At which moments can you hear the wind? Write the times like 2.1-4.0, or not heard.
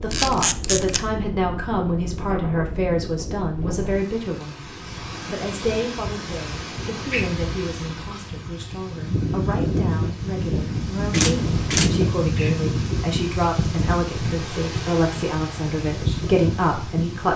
0.0-17.3.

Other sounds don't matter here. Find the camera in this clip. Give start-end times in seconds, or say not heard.
0.1-1.0, 11.1-11.9.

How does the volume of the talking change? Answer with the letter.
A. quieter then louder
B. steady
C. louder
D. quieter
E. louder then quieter
A.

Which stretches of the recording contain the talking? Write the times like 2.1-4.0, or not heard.
0.0-4.6, 5.2-17.3.